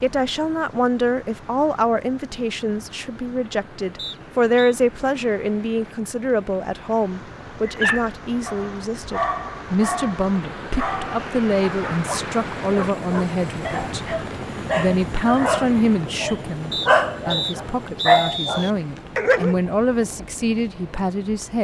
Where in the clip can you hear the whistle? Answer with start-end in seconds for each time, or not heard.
4.0-4.8, 16.7-18.7.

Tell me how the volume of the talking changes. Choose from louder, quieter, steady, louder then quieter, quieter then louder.
steady.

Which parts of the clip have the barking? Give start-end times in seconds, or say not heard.
7.7-19.6.